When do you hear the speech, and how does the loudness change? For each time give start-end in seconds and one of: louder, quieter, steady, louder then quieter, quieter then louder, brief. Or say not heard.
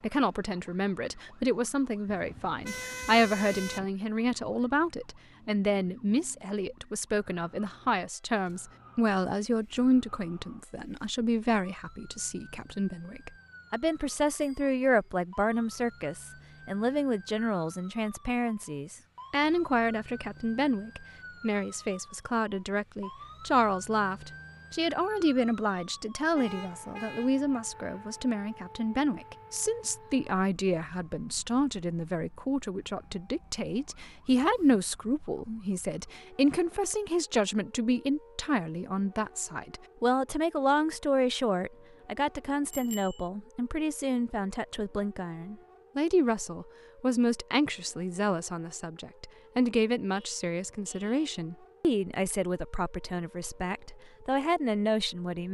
0.0-55.5 steady.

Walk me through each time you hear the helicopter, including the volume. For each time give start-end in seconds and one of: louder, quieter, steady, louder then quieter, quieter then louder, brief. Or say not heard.
not heard.